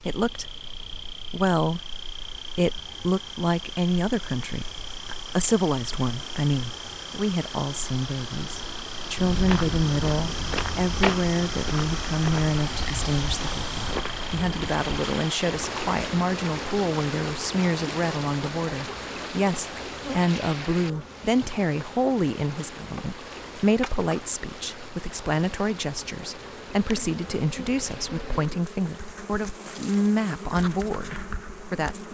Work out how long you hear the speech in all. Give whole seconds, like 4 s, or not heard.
32 s.